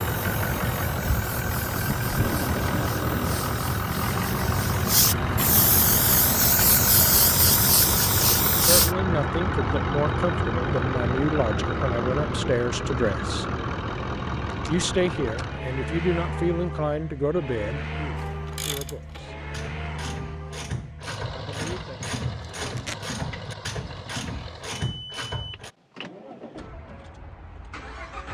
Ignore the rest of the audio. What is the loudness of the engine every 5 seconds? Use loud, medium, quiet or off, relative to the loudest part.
loud, loud, loud, medium, quiet, quiet.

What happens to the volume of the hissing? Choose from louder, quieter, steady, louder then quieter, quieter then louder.
louder.